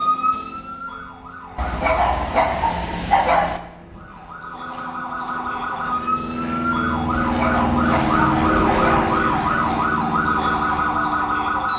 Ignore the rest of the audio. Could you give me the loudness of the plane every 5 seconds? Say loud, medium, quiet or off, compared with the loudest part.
quiet, loud, medium.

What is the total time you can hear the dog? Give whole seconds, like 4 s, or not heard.
4 s.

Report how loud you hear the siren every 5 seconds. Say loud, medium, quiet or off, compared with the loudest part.
medium, loud, loud.